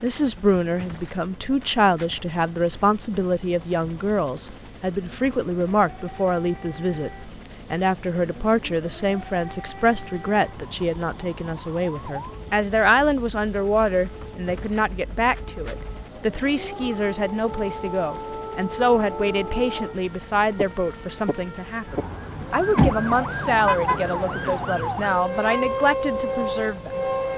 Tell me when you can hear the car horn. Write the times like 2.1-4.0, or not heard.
22.3-24.0.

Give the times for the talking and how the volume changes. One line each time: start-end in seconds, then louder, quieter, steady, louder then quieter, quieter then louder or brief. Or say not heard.
0.0-27.3 steady.